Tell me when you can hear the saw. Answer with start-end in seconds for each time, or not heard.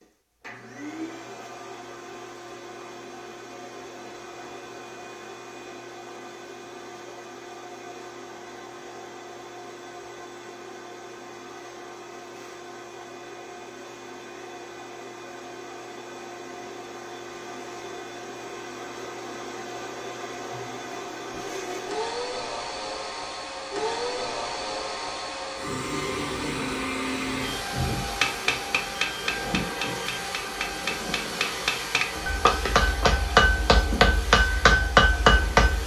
not heard.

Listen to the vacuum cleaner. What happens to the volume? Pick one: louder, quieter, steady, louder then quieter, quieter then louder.
louder.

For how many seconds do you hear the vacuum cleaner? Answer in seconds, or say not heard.
36 s.